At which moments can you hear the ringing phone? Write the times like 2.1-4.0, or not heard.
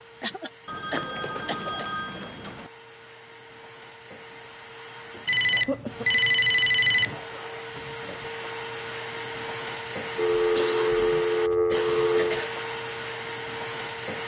0.7-2.7, 5.2-7.2, 10.2-12.5.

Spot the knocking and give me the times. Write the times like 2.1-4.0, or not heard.
not heard.